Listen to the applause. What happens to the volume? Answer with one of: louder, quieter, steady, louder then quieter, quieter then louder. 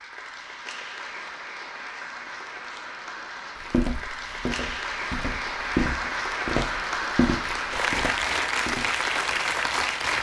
louder.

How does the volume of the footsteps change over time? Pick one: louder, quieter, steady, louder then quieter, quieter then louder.
louder then quieter.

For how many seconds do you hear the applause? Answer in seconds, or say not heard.
10 s.